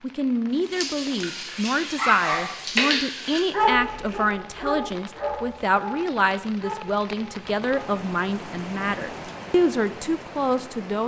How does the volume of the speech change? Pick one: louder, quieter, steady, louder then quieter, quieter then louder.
steady.